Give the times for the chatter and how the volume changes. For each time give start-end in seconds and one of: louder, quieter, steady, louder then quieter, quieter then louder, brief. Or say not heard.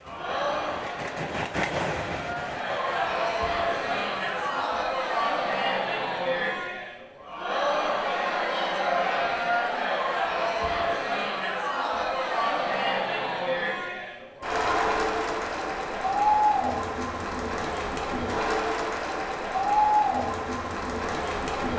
0.1-21.7 steady.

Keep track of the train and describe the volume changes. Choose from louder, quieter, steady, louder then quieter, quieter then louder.
louder then quieter.